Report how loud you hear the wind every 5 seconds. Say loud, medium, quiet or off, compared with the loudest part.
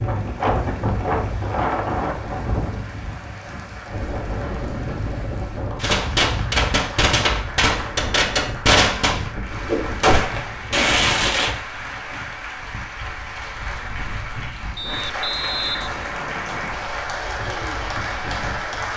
loud, medium, quiet, quiet.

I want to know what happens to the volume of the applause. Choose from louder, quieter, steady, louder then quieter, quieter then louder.
louder.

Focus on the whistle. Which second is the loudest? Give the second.
16 s.